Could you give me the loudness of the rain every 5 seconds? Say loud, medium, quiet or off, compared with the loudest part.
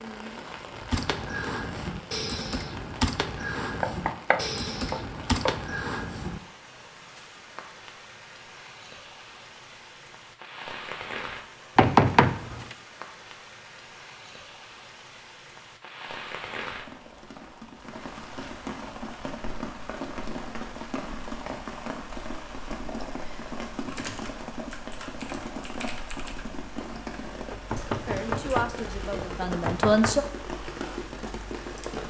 medium, medium, medium, loud, loud, loud, loud.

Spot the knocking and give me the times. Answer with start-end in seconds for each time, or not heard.
3.8-5.6, 11.8-12.8, 27.5-30.2.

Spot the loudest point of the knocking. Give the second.
12 s.